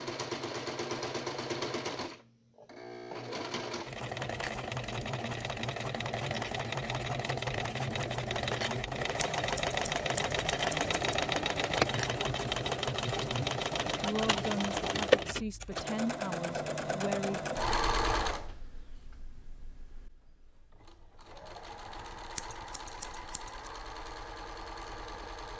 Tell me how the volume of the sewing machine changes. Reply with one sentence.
The volume of the sewing machine goes up, then down.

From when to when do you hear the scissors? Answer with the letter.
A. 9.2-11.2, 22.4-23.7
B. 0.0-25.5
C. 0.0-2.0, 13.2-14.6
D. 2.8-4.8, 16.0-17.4
A.